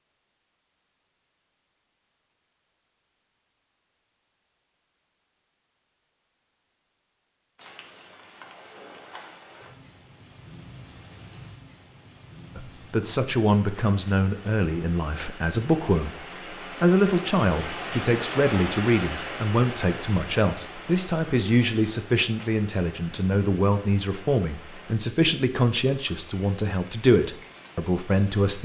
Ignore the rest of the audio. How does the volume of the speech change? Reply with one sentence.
The volume of the speech stays about the same.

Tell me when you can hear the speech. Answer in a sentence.
The speech can be heard from 12.6 to 16.1 s and from 16.8 to 28.6 s.